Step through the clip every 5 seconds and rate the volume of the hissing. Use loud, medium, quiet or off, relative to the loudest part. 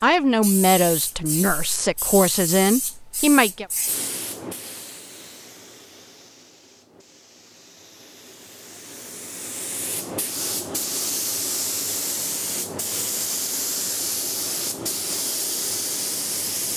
medium, quiet, loud, loud.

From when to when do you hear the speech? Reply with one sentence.
The speech can be heard from 0.0 to 3.6 s.